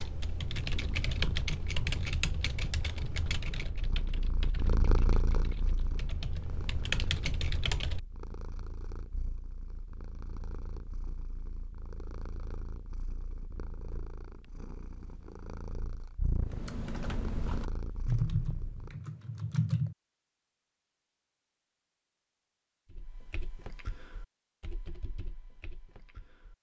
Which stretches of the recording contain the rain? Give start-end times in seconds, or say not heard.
not heard.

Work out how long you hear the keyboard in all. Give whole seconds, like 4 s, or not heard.
15 s.